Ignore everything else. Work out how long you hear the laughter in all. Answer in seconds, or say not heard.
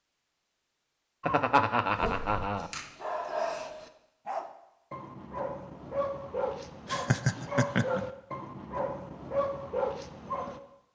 3 s.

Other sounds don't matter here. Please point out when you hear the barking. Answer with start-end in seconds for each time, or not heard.
1.9-10.6.